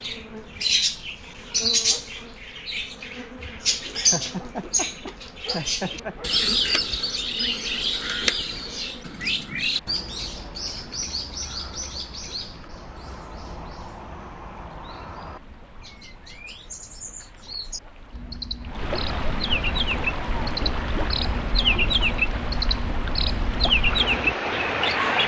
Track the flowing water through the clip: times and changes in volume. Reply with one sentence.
You can hear the flowing water from 0.0 to 25.2 s, getting louder.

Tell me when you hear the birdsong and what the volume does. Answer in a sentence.
The birdsong can be heard from 0.0 to 25.2 s, getting quieter then louder.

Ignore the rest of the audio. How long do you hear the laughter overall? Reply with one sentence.
You can hear the laughter for 2 seconds altogether.